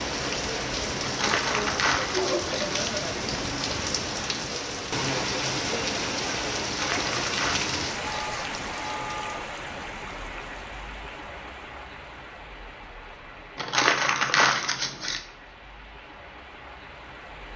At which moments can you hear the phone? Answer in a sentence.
You can hear the phone from 8.0 to 9.3 s.